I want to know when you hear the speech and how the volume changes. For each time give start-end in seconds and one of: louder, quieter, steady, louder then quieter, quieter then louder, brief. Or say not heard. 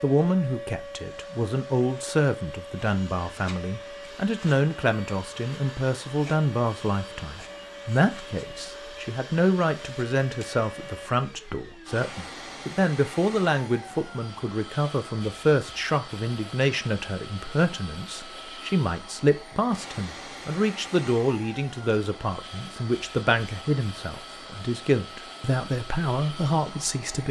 0.0-27.2 steady.